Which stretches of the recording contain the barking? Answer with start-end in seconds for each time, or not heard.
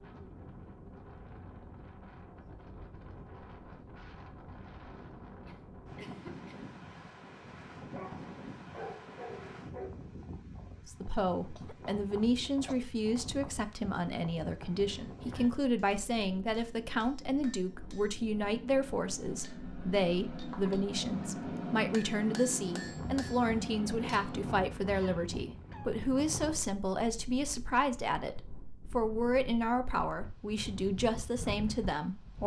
7.9-9.9.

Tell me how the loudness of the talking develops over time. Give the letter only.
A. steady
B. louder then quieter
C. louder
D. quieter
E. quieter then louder
A.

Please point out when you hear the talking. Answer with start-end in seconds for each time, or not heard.
10.8-32.4.